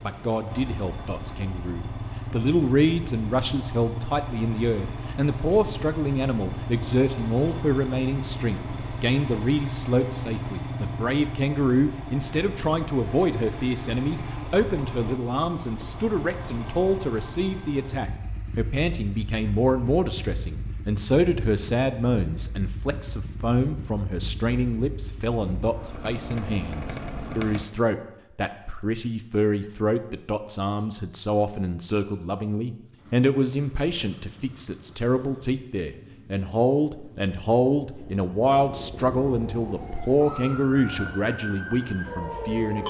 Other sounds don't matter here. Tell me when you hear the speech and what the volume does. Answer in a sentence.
You can hear the speech from 0.0 to 42.8 s, at a steady volume.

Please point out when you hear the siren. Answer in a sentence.
You can hear the siren from 39.5 to 42.8 s.